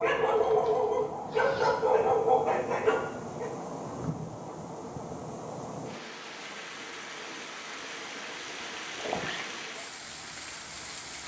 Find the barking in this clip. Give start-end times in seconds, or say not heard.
0.0-3.5.